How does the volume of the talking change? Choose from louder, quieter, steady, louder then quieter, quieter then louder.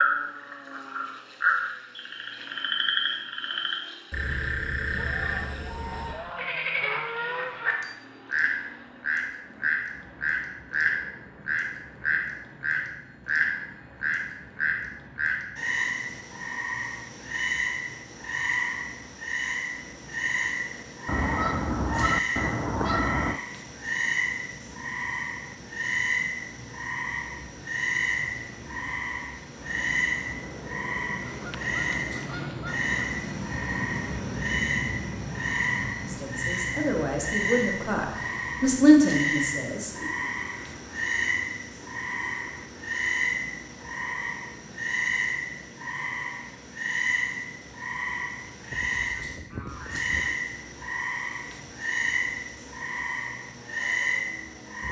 louder then quieter.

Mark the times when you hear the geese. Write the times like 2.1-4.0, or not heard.
5.0-7.7, 21.1-23.4, 31.2-32.9, 48.7-50.4.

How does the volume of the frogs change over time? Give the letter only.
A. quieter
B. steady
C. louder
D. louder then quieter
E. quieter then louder
B.